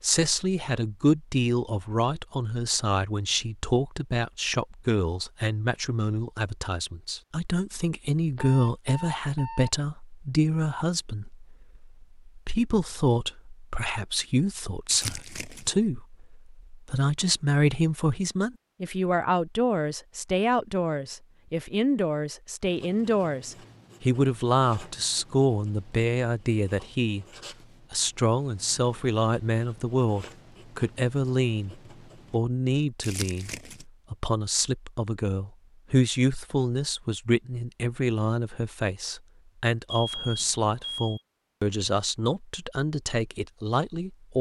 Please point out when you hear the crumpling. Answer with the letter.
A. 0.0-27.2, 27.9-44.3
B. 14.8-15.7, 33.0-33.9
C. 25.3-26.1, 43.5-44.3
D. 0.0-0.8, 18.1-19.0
B.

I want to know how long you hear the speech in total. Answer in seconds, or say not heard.
44 s.